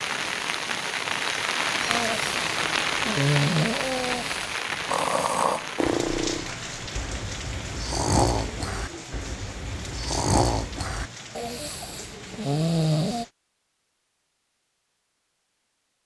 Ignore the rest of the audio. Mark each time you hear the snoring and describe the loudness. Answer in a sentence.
The snoring can be heard from 1.9 to 13.2 s, at a steady volume.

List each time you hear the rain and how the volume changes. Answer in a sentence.
The rain can be heard from 0.0 to 13.3 s, getting quieter.